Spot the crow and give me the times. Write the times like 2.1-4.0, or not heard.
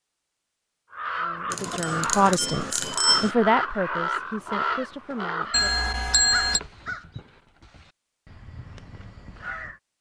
0.9-9.8.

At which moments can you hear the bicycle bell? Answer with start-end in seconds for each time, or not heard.
1.5-3.3, 5.5-6.6.